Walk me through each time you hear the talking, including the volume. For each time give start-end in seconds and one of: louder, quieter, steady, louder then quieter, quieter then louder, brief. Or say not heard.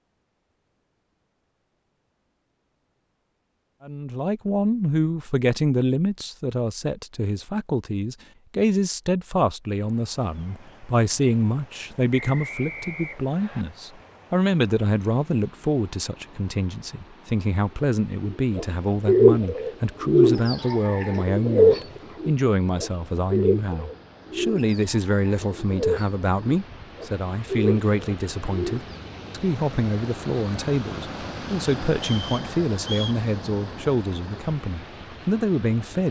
3.8-36.0 steady.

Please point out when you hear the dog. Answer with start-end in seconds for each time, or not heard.
not heard.